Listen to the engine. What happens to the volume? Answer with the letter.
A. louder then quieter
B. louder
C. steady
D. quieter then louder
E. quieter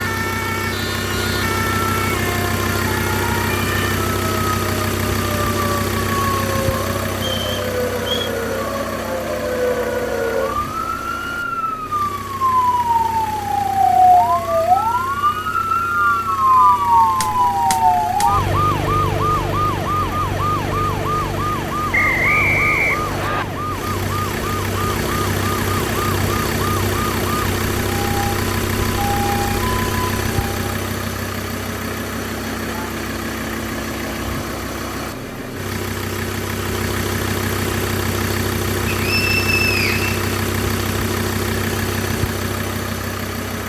D.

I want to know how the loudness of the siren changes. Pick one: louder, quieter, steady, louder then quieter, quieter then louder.
louder then quieter.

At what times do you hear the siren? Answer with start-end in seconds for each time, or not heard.
0.0-30.6.